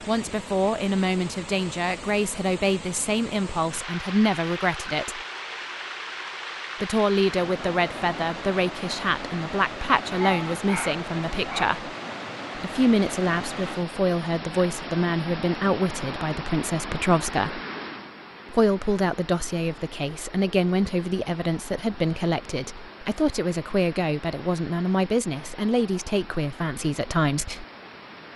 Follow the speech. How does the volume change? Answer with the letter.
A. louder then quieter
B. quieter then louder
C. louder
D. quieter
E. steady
E.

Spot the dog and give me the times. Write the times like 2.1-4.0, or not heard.
10.1-11.7.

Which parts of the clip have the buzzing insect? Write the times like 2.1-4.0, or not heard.
not heard.